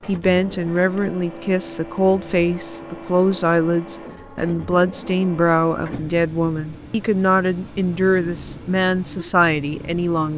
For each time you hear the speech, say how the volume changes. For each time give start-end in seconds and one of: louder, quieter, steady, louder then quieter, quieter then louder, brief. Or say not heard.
0.1-10.3 steady.